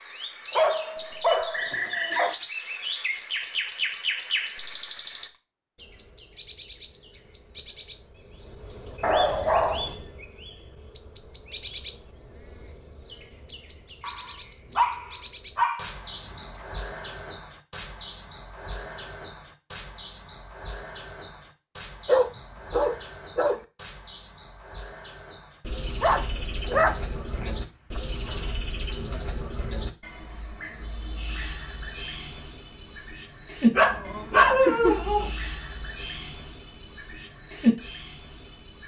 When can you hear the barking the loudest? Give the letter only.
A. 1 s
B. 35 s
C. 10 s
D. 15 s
B.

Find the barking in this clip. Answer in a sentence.
The barking can be heard from 0.5 to 2.4 s, from 9.0 to 9.9 s, from 14.0 to 16.6 s, from 22.1 to 23.6 s, from 26.0 to 28.0 s and from 33.8 to 35.3 s.